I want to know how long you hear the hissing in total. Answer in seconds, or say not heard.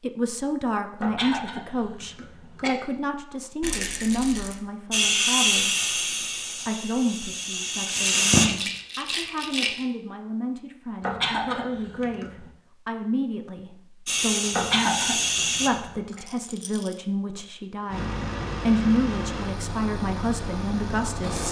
5 s.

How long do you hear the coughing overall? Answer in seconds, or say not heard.
5 s.